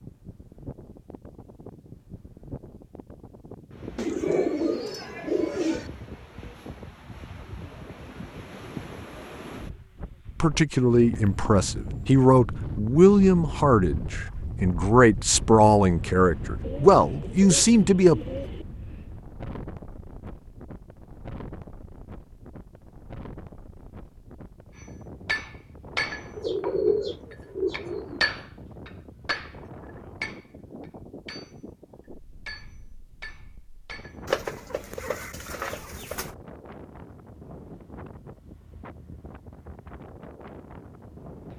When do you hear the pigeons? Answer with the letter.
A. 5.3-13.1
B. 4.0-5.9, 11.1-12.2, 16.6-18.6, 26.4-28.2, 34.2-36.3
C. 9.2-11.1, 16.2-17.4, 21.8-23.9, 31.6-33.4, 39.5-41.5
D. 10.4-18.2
B.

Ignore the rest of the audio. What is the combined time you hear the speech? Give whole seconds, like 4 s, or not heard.
8 s.